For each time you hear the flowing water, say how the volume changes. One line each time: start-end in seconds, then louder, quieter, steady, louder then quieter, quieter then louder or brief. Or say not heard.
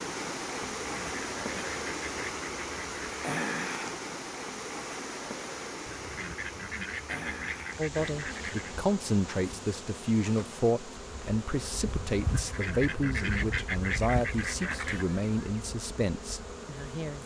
0.0-17.2 quieter.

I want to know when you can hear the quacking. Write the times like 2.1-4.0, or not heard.
0.6-3.2, 5.8-8.8, 12.2-15.1.